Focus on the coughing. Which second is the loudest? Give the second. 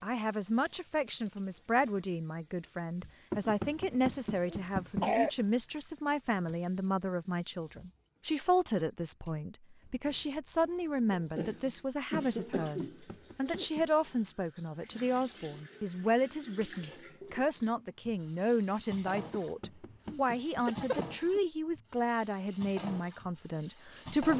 5 s.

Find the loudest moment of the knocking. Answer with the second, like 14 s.
5 s.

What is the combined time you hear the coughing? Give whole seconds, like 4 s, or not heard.
6 s.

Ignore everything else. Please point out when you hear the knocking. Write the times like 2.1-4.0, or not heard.
3.3-5.3, 12.8-13.9, 19.3-21.0.